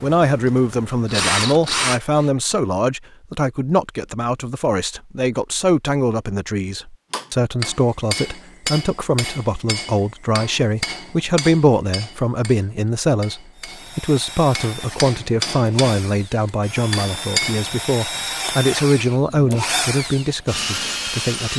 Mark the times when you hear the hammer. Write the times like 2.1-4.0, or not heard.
7.1-17.7.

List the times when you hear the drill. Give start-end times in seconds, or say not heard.
0.0-2.4, 13.6-21.5.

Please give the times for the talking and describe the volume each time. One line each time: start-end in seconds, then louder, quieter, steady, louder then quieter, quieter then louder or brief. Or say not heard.
0.0-21.5 steady.